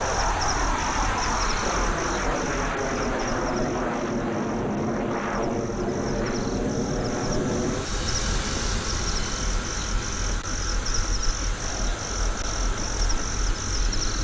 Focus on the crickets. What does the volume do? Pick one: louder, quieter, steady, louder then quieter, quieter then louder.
quieter then louder.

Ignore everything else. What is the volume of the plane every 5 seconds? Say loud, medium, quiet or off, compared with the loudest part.
loud, loud, quiet.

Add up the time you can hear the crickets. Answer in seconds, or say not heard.
14 s.